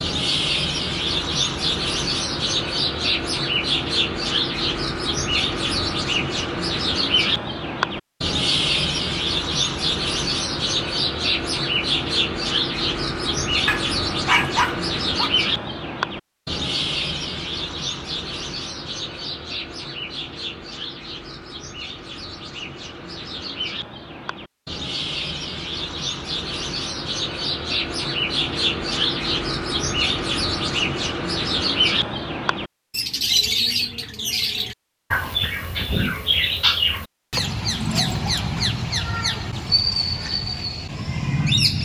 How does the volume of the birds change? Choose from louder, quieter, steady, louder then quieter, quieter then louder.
quieter then louder.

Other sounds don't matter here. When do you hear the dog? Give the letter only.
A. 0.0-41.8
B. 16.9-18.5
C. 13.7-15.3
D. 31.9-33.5
C.